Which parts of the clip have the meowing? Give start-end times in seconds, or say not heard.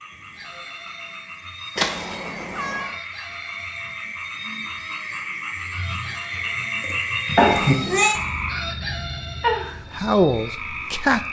1.8-3.0, 7.3-8.2.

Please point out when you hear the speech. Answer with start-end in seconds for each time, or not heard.
9.9-11.2.